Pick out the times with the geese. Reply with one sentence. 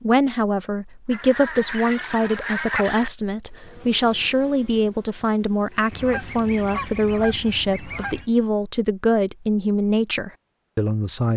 You can hear the geese from 1.1 to 3.1 s and from 5.9 to 8.2 s.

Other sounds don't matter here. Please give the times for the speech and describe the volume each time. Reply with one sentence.
You can hear the speech from 0.0 to 11.3 s, at a steady volume.